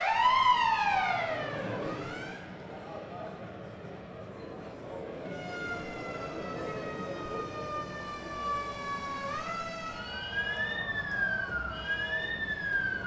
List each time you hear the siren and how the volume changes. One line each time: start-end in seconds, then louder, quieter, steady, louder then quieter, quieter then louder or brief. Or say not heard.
0.0-2.4 brief
5.2-13.0 louder.